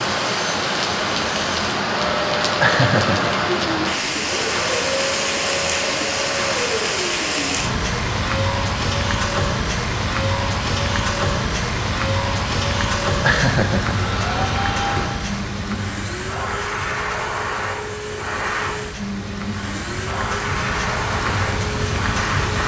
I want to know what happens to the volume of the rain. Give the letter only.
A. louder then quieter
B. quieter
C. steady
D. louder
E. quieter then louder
B.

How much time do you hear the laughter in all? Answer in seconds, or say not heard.
2 s.